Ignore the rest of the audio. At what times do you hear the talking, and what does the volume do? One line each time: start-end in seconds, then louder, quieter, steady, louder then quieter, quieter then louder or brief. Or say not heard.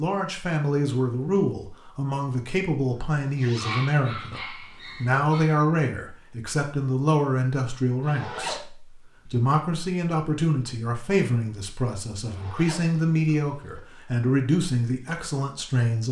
0.0-16.0 steady.